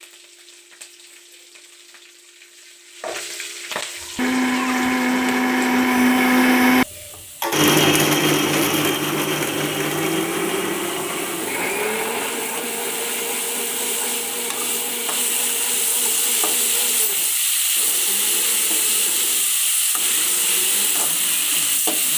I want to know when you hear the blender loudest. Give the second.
6 s.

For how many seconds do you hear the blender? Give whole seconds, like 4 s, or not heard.
18 s.